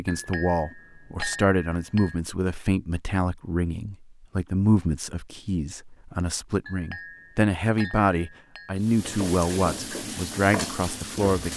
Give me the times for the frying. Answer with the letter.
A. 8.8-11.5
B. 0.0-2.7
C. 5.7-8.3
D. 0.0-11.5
A.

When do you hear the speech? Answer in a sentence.
The speech can be heard from 0.0 to 11.5 s.